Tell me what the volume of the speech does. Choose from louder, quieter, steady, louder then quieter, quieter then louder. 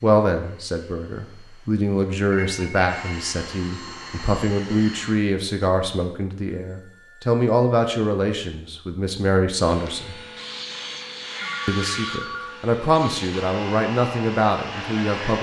steady.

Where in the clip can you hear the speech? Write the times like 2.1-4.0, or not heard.
0.0-10.2, 11.7-15.3.